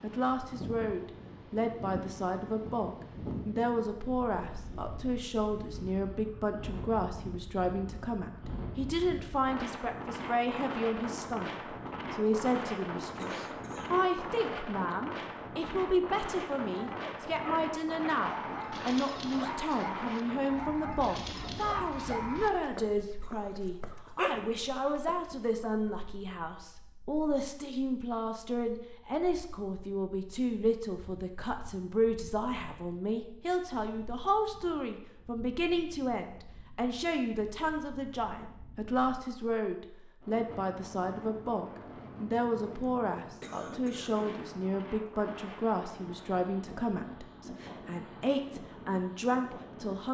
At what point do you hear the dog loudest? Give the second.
24 s.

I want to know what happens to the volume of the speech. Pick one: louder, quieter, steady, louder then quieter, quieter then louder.
steady.